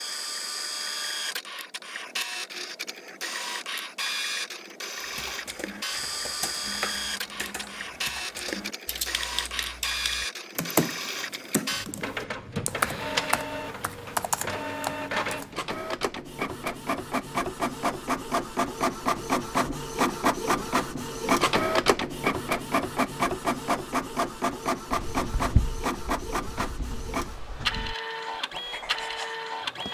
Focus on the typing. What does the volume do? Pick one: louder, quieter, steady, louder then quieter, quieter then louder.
louder.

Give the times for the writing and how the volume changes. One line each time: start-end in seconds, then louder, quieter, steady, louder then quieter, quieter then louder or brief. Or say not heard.
24.9-29.9 quieter then louder.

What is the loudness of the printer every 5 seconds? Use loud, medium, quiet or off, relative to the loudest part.
medium, medium, medium, loud, loud, medium.